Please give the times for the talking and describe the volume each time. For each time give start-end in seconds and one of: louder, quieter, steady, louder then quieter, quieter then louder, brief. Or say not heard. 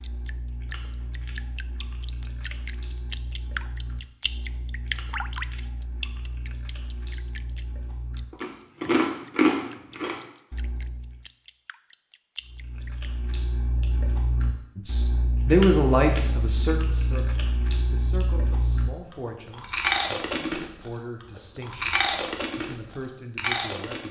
14.8-24.0 quieter.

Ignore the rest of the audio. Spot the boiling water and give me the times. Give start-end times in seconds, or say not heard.
not heard.